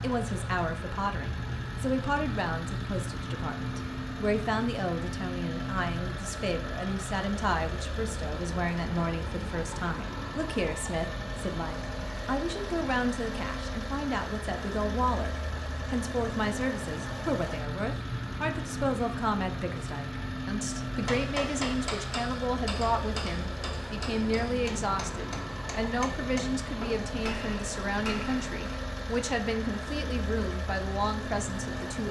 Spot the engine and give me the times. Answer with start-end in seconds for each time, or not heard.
0.0-32.0.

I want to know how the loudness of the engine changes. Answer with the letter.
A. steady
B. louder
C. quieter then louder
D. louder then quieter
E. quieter
A.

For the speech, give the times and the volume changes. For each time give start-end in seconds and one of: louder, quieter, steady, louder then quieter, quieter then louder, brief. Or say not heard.
0.0-15.3 steady
15.9-32.0 steady.